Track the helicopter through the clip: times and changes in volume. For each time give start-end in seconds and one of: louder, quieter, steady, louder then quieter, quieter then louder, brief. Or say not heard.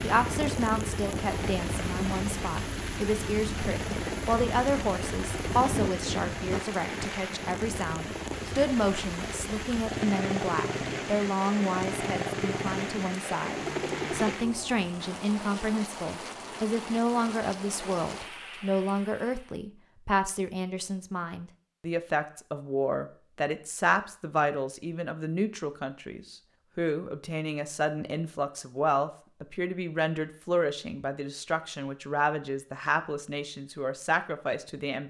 0.0-14.3 steady.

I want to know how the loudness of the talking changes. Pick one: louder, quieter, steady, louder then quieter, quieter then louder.
steady.